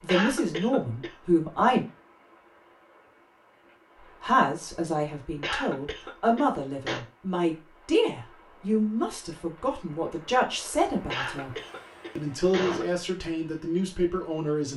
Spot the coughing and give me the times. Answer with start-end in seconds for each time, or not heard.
0.1-1.1, 5.4-7.0, 11.1-12.8.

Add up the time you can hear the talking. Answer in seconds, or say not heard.
12 s.